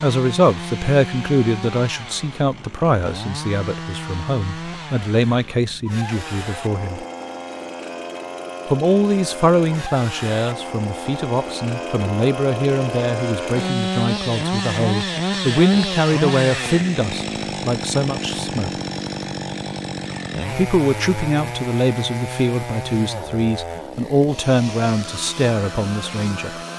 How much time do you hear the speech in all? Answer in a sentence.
You can hear the speech for 23 seconds altogether.